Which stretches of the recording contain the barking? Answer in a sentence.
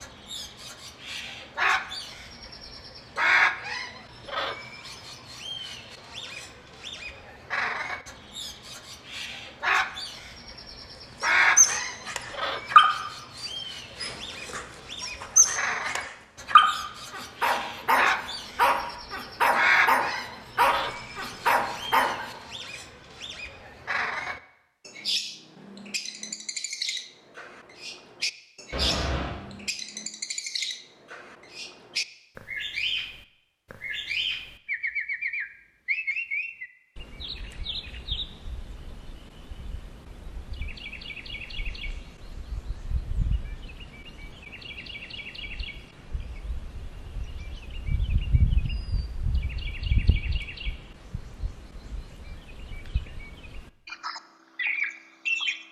You can hear the barking from 11.2 to 22.2 s.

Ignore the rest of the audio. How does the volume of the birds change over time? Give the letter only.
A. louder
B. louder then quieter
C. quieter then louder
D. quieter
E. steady
D.